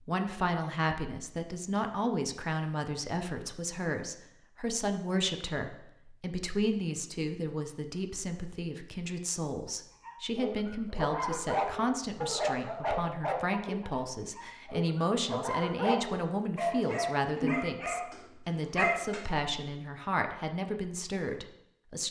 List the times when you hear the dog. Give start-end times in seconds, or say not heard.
9.7-19.7.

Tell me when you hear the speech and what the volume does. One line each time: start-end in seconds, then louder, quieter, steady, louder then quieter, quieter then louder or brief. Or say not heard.
0.0-22.0 steady.